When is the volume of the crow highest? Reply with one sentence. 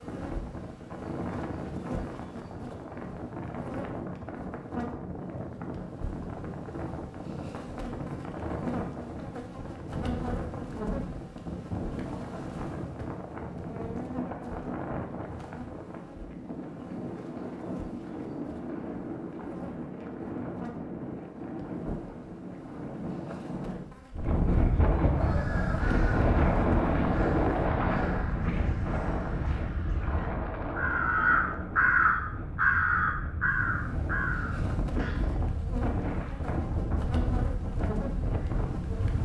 The volume of the crow peaks at 32 seconds.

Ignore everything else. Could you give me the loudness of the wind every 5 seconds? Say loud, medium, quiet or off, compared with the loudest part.
medium, medium, medium, medium, medium, loud, medium, medium.